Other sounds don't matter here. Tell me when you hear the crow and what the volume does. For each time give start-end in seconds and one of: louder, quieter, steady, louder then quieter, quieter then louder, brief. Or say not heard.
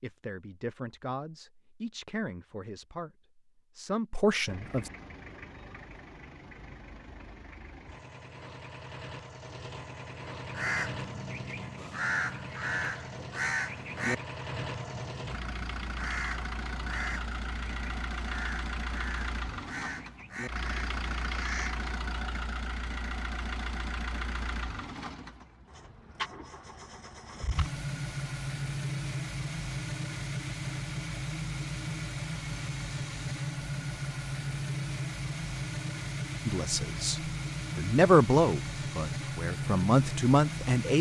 10.4-21.9 quieter.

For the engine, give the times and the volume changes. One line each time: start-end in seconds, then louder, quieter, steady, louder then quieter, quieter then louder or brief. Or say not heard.
4.5-40.9 louder.